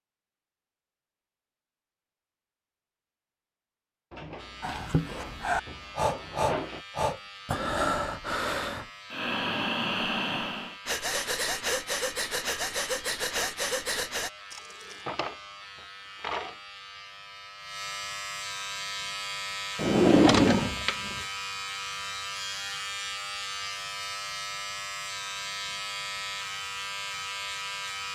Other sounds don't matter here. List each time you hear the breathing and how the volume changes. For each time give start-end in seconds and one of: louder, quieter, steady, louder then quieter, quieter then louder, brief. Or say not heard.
4.6-14.3 steady.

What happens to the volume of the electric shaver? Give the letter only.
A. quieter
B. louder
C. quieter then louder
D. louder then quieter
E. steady
B.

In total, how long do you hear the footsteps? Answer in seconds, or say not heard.
not heard.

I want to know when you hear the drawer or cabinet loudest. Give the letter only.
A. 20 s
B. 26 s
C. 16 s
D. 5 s
A.